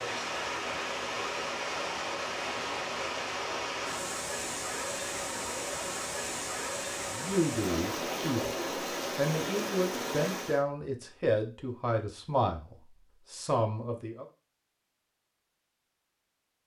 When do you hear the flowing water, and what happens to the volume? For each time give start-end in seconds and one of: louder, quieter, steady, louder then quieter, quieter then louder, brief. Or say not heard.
0.0-10.6 steady.